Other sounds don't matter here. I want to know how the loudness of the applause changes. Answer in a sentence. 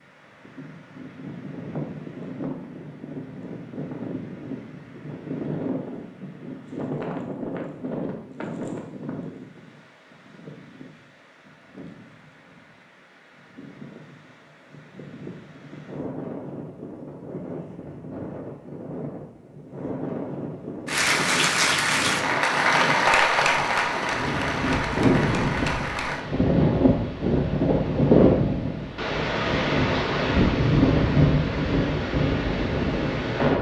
The loudness of the applause goes down.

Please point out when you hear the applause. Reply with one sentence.
You can hear the applause from 20.9 to 26.2 s.